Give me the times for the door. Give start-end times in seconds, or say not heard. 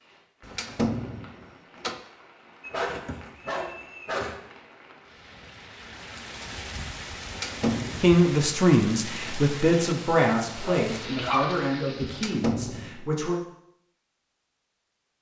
0.4-1.9, 7.2-8.2, 12.1-13.1.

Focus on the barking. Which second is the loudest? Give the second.
11 s.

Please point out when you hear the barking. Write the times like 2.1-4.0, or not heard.
2.6-4.4, 10.7-12.1.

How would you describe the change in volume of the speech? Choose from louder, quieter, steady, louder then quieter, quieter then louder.
quieter.